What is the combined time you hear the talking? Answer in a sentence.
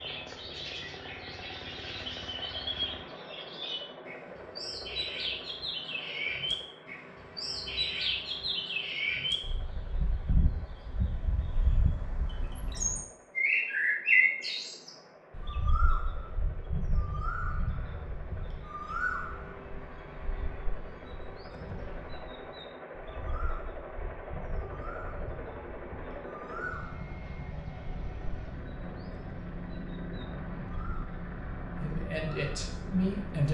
The talking can be heard for 2 seconds in total.